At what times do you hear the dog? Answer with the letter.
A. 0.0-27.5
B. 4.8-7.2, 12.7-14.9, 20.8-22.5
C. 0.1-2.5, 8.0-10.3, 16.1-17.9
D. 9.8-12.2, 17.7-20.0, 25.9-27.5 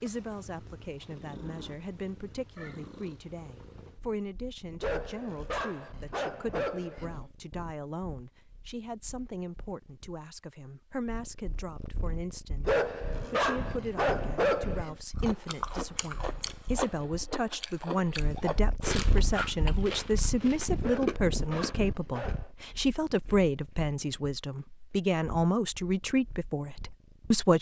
B.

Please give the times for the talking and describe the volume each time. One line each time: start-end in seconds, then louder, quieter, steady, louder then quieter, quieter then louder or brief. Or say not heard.
0.0-27.5 louder.